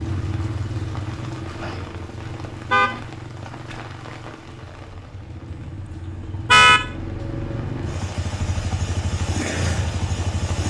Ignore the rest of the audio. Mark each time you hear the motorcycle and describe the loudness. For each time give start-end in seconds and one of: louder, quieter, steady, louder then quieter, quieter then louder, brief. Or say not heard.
0.0-10.6 quieter then louder.